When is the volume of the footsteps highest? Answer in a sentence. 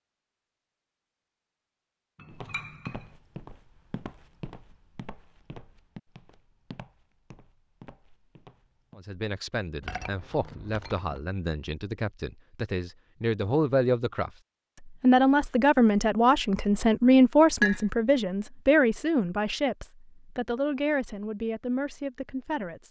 The volume of the footsteps peaks at 3 seconds.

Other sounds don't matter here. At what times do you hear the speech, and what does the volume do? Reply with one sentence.
You can hear the speech from 8.9 to 22.8 s, getting louder then quieter.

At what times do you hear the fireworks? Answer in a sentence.
The fireworks can't be heard in this clip.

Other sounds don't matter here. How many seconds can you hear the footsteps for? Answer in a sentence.
The footsteps can be heard for 7 seconds in total.